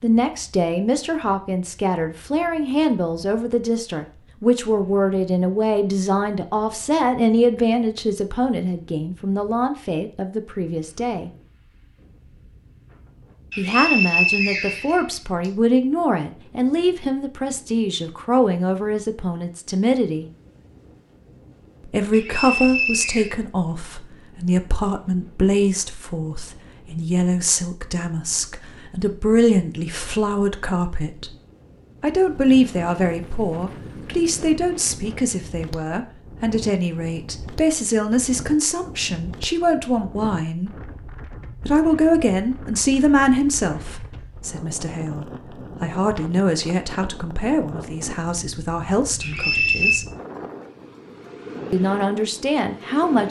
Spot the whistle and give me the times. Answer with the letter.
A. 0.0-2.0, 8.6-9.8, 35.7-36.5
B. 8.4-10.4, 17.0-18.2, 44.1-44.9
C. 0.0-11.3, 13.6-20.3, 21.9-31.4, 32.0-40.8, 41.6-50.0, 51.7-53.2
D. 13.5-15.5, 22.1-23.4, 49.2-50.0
D.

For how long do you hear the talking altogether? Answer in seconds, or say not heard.
46 s.